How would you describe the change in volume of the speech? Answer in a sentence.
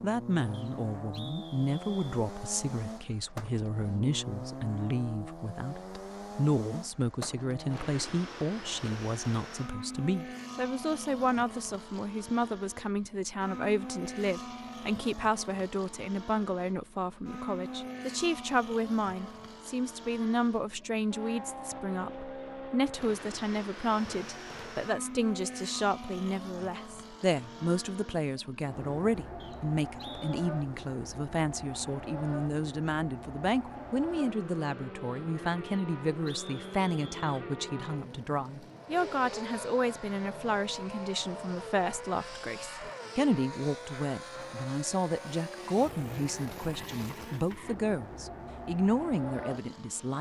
The loudness of the speech stays about the same.